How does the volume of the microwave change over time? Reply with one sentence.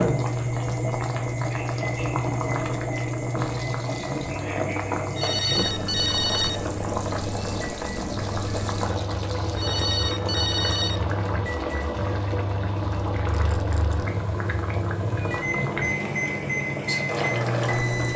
The loudness of the microwave goes down, then up.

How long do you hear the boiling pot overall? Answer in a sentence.
The boiling pot can be heard for 18 seconds in total.